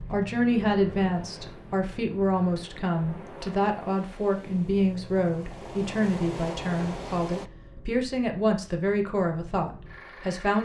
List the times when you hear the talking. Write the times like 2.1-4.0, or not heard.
0.0-10.5.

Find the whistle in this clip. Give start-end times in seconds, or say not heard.
not heard.